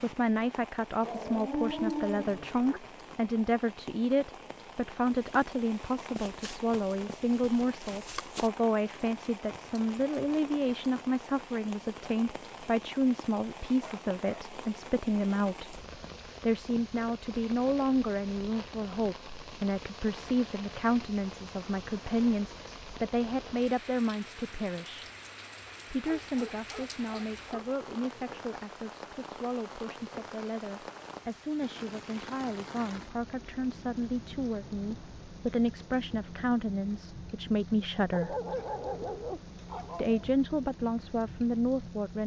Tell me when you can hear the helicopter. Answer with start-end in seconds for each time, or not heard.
not heard.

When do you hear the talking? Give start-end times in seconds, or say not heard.
0.0-15.8, 16.4-25.1, 25.9-38.4, 40.0-42.2.